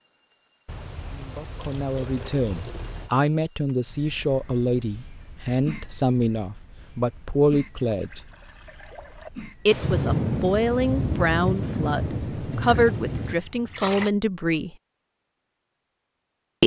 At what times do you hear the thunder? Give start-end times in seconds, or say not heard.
9.7-13.3.